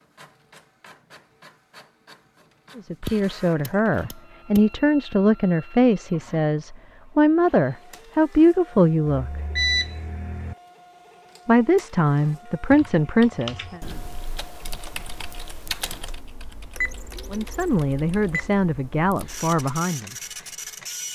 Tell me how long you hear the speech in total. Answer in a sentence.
The speech can be heard for 12 seconds in total.